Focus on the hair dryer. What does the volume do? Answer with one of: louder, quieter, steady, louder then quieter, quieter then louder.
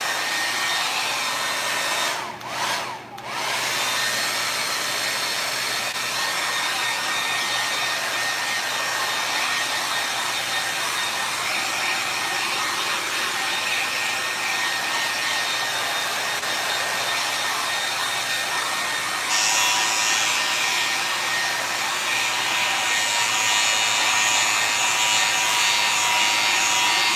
steady.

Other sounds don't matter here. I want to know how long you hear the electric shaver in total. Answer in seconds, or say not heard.
8 s.